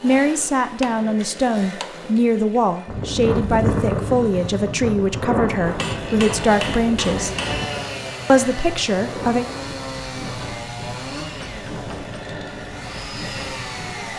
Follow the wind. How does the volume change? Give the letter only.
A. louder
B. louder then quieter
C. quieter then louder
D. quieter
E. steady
D.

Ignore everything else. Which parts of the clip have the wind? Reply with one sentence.
The wind can be heard from 2.9 to 14.1 s.